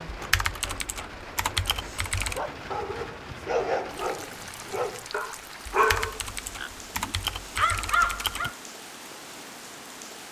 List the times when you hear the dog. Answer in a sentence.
The dog can be heard from 2.2 to 8.6 s.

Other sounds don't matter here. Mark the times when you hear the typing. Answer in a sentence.
You can hear the typing from 0.1 to 2.4 s and from 5.7 to 8.5 s.